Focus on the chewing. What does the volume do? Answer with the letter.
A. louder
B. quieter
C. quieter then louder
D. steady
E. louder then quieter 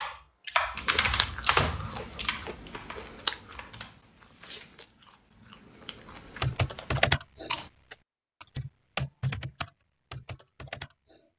C.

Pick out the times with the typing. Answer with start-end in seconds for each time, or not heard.
0.0-4.0, 6.4-11.2.